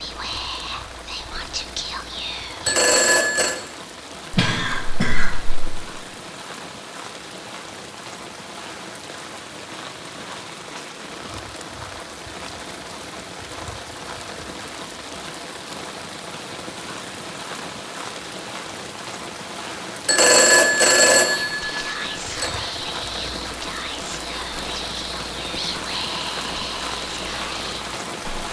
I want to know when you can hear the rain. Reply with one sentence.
You can hear the rain from 0.0 to 28.4 s.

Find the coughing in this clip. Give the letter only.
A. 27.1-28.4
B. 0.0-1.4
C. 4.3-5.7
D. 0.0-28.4
C.